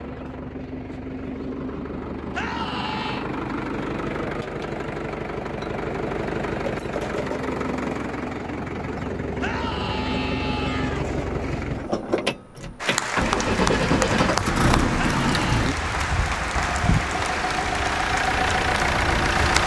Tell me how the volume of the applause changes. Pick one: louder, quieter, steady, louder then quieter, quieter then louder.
steady.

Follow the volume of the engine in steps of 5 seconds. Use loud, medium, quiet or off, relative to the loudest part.
medium, loud, loud, loud.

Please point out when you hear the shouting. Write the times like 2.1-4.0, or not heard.
2.3-3.2, 9.4-11.1, 14.9-15.7.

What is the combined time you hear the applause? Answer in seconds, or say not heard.
7 s.